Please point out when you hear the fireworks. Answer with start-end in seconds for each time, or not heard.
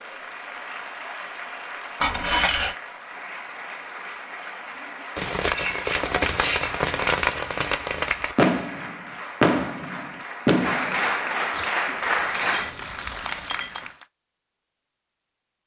5.2-11.7.